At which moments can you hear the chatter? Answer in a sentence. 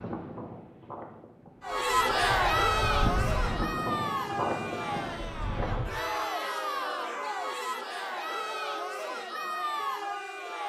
You can hear the chatter from 1.6 to 10.6 s.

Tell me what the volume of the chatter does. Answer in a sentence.
The loudness of the chatter goes down.